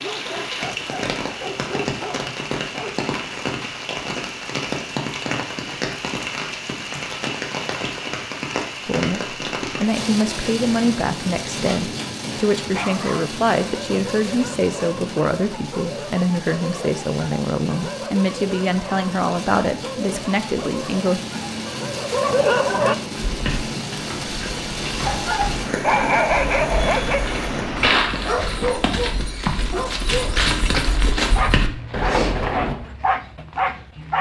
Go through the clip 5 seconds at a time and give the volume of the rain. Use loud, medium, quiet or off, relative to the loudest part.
loud, loud, loud, medium, loud, loud, off.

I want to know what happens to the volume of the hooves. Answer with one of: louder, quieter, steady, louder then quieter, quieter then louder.
louder.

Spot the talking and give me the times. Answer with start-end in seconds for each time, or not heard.
8.8-21.2.